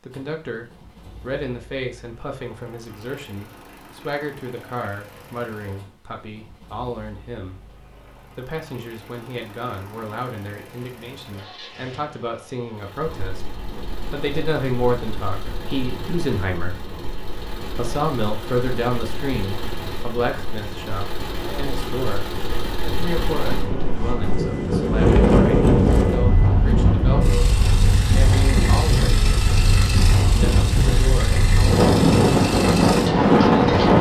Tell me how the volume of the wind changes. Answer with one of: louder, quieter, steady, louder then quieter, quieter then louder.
louder.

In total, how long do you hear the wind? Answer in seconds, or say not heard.
21 s.